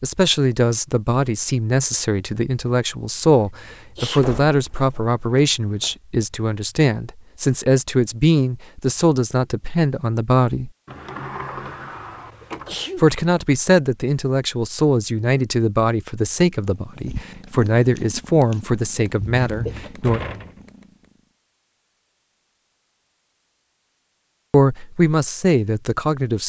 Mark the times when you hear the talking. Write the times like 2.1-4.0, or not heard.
0.0-10.7, 12.9-20.2, 24.5-26.4.